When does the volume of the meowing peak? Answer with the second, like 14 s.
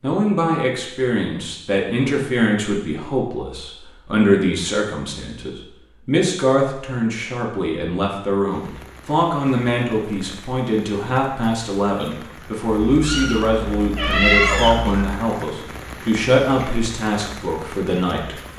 14 s.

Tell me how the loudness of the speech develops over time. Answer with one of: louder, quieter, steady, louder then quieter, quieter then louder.
steady.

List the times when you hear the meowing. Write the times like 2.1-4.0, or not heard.
12.9-15.2.